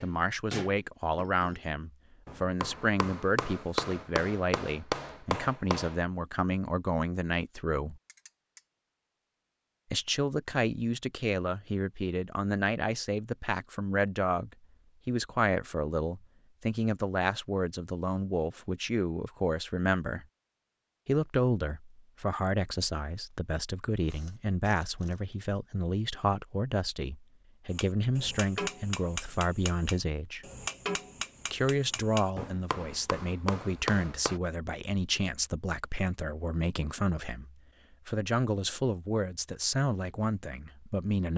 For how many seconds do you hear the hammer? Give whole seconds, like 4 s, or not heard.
13 s.